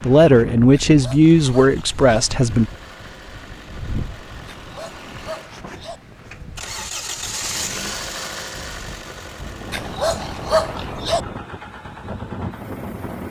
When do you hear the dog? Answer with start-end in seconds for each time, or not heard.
0.7-2.2, 4.5-6.0, 9.7-11.2.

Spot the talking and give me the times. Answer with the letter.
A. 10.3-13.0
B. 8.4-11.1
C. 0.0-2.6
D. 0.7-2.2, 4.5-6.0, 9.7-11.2
C.